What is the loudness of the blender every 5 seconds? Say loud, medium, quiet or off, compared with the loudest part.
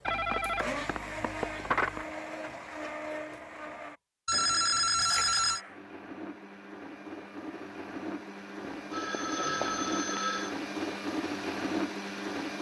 medium, medium, loud.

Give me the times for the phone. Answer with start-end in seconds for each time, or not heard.
0.1-2.0, 4.2-5.6, 8.7-10.6.